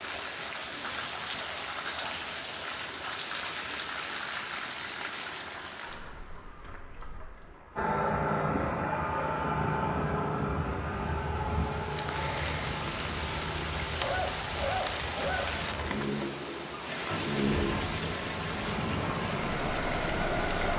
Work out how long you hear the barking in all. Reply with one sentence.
The barking can be heard for 2 seconds in total.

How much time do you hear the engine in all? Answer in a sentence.
The engine can be heard for 13 seconds in total.